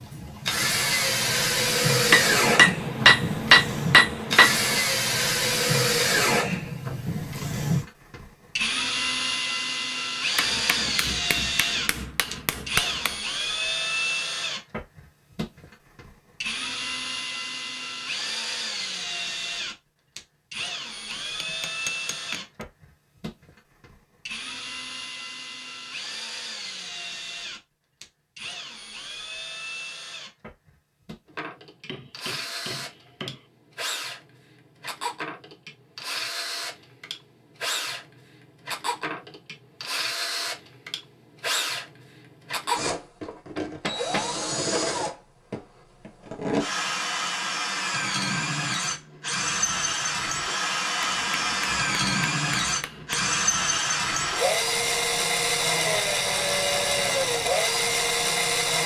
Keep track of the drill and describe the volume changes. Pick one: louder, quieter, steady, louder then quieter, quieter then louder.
quieter then louder.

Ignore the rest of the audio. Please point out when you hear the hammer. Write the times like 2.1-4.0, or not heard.
2.1-4.8, 10.3-13.1, 21.1-22.6, 31.9-33.4, 43.5-44.3, 51.0-53.3.